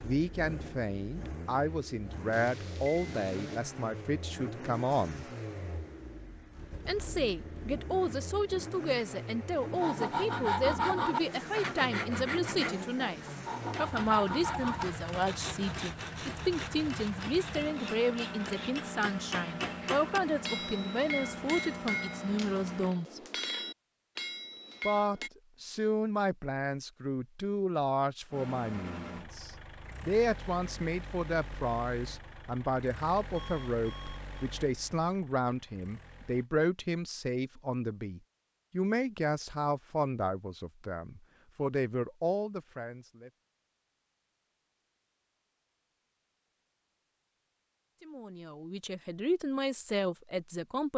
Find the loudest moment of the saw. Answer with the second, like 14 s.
11 s.